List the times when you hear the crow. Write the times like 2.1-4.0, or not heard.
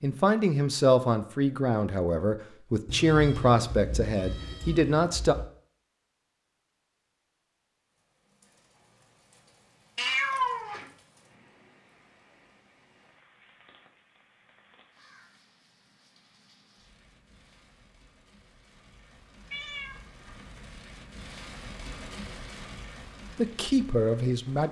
not heard.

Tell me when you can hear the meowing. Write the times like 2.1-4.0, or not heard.
2.9-5.5, 9.9-10.9, 19.5-20.0.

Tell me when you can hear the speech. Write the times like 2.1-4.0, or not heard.
0.0-5.3, 23.4-24.6.